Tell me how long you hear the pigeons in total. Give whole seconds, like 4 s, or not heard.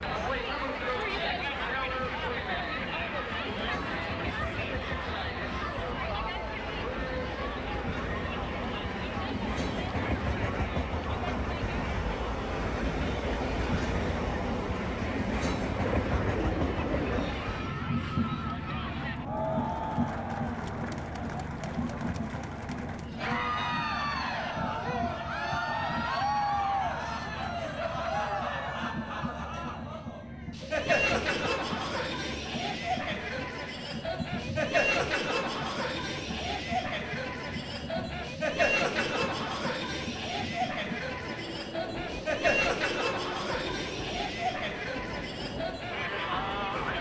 2 s.